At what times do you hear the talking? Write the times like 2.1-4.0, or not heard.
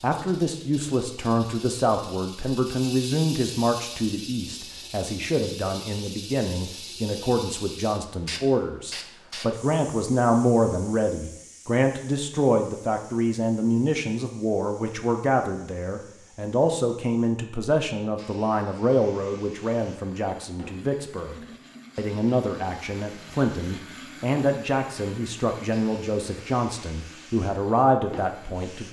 0.0-21.4, 21.9-28.8.